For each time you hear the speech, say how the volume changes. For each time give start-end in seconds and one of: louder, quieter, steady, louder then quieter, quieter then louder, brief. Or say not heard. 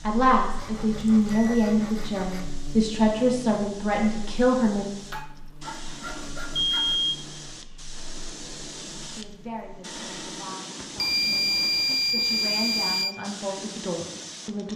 0.1-4.8 steady
9.2-14.7 louder.